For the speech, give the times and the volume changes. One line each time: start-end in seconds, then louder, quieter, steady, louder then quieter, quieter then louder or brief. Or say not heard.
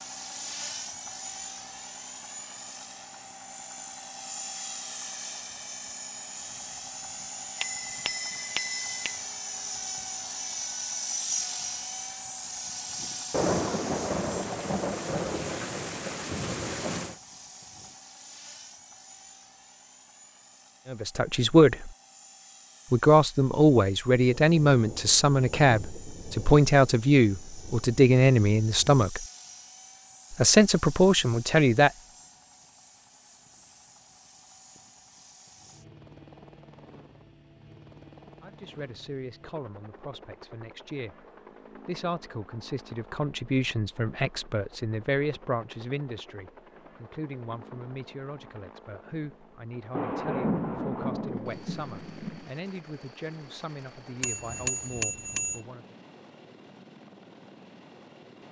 20.9-21.9 brief
22.9-29.2 steady
30.3-31.9 brief
38.4-56.0 louder then quieter.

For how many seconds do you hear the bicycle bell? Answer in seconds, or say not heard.
3 s.